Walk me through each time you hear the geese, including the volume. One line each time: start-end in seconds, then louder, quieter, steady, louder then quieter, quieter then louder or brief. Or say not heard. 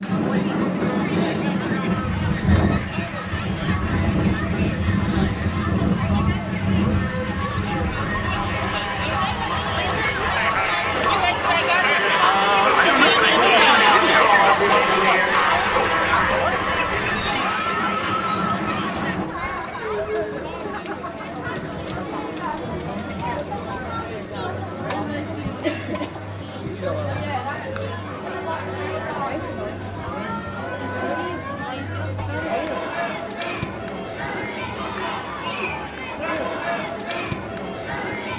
not heard.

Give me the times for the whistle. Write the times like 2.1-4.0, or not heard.
not heard.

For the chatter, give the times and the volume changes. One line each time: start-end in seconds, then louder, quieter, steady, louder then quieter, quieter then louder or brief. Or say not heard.
0.0-38.3 louder then quieter.